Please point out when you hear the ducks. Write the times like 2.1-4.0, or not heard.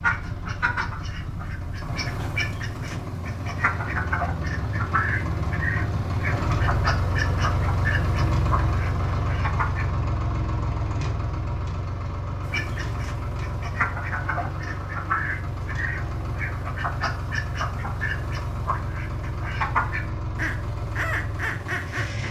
0.0-9.8, 12.4-22.2.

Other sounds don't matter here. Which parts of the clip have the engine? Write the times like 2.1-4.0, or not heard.
0.0-22.2.